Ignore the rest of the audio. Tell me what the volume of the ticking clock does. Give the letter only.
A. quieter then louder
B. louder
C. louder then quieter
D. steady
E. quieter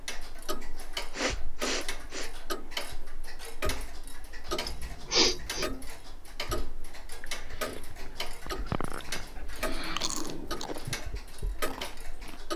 D.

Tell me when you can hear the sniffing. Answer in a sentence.
You can hear the sniffing from 1.1 to 2.3 s, from 4.5 to 5.7 s and from 8.4 to 10.1 s.